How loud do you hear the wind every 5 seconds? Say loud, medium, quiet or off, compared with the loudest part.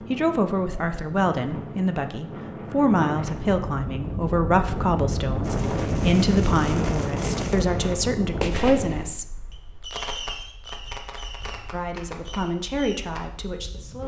medium, loud, quiet.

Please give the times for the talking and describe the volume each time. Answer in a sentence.
The talking can be heard from 0.1 to 9.3 s, at a steady volume; and briefly from 11.7 to 14.0 s.